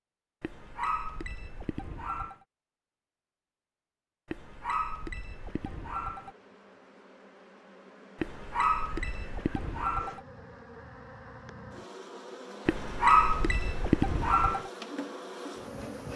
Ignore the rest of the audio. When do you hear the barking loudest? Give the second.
13 s.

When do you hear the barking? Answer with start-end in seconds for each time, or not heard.
0.4-2.4, 4.2-6.3, 8.2-10.2, 12.7-14.7.